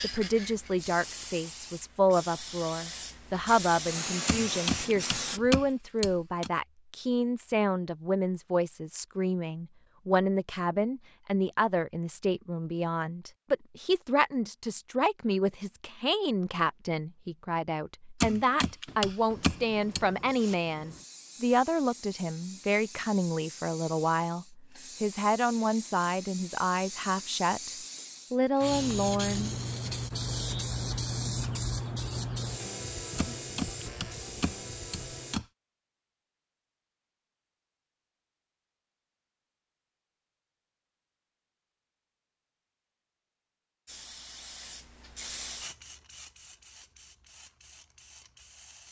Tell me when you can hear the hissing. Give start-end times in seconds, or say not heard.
0.0-5.4, 19.3-35.4, 43.9-48.8.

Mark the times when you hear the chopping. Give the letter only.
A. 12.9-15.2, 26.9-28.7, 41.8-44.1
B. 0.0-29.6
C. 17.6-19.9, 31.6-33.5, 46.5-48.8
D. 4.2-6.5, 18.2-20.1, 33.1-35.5
D.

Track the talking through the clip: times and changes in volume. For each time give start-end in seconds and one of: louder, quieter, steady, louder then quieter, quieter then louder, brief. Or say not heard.
0.0-29.6 steady.